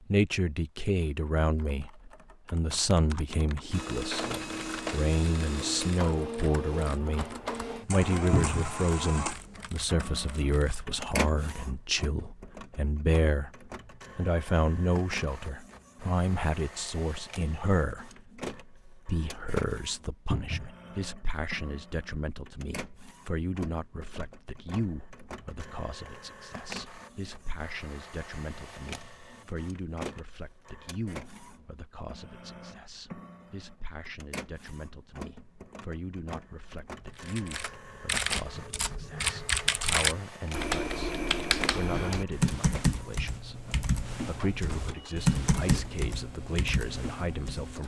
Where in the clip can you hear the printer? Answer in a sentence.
You can hear the printer from 3.7 to 47.8 s.